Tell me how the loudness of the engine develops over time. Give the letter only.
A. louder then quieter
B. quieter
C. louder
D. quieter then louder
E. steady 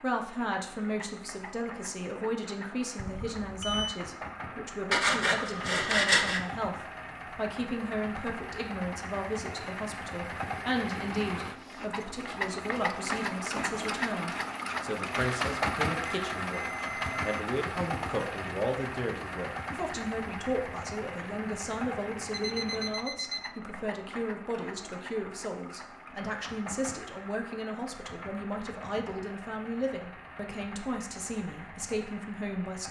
A.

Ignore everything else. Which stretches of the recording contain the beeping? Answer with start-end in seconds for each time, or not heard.
3.0-4.0, 16.0-17.4, 22.3-23.5.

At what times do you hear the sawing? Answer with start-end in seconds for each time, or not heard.
4.9-6.4.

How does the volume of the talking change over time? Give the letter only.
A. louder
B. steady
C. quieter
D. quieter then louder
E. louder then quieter
B.